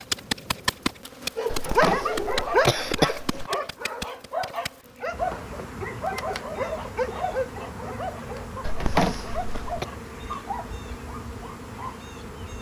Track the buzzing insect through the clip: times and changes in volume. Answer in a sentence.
You can hear the buzzing insect from 0.0 to 12.5 s, getting quieter.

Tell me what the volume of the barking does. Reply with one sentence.
The loudness of the barking goes down.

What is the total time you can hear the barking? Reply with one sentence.
You can hear the barking for 11 seconds altogether.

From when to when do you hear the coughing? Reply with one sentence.
You can hear the coughing from 1.5 to 3.5 s and from 8.6 to 9.8 s.